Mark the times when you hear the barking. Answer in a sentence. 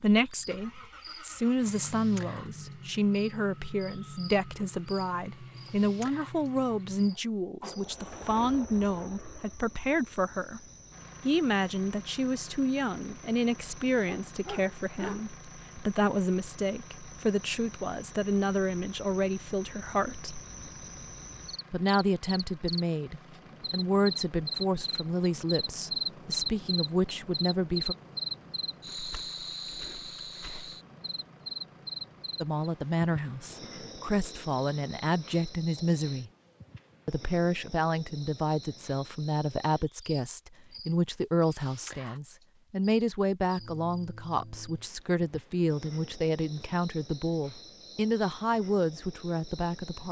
The barking can be heard from 14.0 to 15.3 s.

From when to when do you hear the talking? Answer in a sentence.
You can hear the talking from 0.0 to 10.6 s, from 11.2 to 20.4 s, from 21.7 to 27.9 s, from 32.4 to 36.3 s and from 37.0 to 50.0 s.